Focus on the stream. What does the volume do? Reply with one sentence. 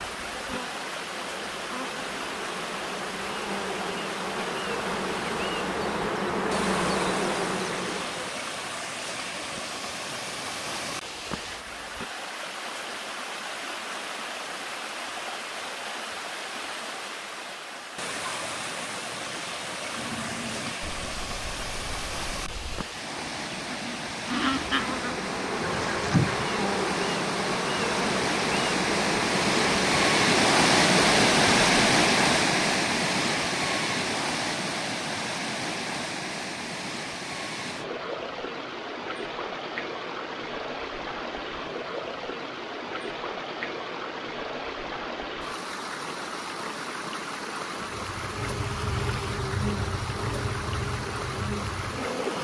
The volume of the stream goes up, then down.